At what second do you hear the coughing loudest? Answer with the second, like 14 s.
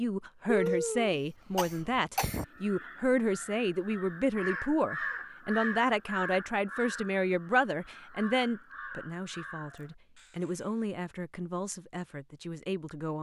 1 s.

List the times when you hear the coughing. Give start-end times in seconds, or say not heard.
0.5-2.5.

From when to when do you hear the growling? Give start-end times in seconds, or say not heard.
not heard.